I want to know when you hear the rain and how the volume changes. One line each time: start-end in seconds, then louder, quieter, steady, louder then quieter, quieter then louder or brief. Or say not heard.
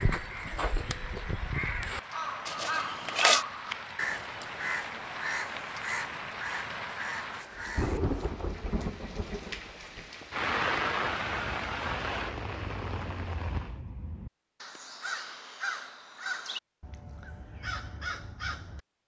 0.0-13.8 louder.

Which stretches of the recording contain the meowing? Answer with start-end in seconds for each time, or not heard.
2.5-3.5.